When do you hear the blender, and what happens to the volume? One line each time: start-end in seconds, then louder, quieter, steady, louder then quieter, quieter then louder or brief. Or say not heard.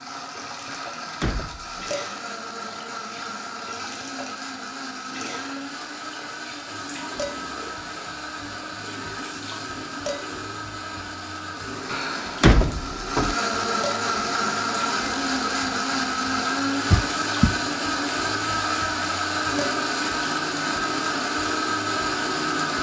0.0-22.7 louder.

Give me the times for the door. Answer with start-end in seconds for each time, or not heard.
0.7-1.8, 11.9-13.3, 16.9-17.6.